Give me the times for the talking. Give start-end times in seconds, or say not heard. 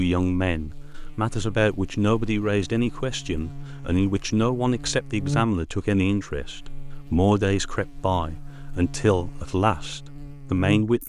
0.0-11.0.